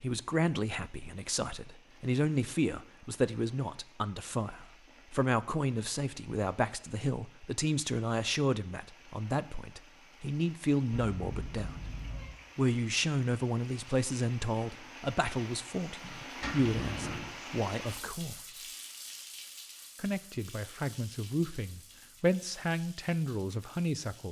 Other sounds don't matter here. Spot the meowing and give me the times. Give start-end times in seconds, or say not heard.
10.9-12.3.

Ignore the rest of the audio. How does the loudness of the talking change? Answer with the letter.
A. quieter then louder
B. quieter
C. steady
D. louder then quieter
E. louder
C.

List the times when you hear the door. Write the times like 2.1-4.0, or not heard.
16.4-17.3.